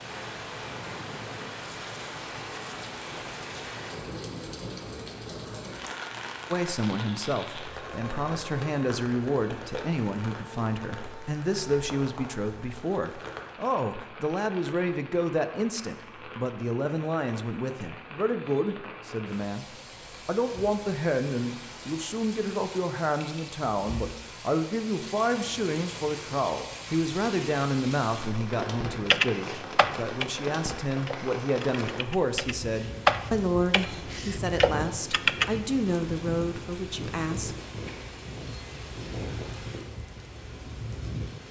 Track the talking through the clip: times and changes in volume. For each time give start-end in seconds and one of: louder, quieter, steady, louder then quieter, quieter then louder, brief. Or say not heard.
6.5-37.5 steady.